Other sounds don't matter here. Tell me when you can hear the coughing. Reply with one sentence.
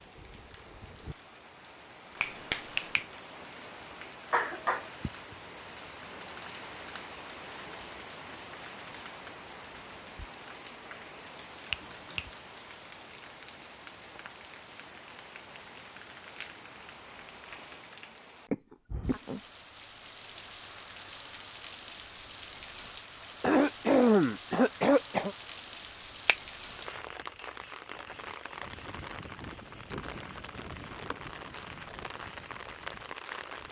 You can hear the coughing from 4.3 to 4.8 s, from 18.5 to 19.4 s and from 23.4 to 25.4 s.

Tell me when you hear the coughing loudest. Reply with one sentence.
The volume of the coughing peaks at 24 seconds.